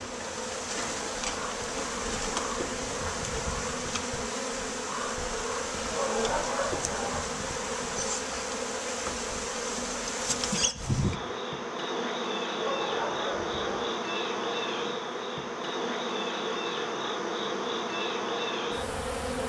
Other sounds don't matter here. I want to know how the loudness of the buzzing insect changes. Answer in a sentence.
The loudness of the buzzing insect stays about the same.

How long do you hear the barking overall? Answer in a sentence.
The barking can be heard for 3 seconds in total.